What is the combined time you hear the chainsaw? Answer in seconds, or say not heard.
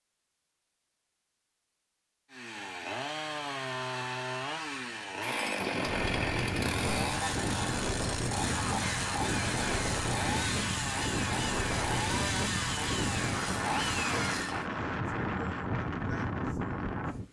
12 s.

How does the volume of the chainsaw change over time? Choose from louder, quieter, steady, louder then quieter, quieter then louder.
steady.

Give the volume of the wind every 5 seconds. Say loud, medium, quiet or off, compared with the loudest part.
off, loud, loud, loud.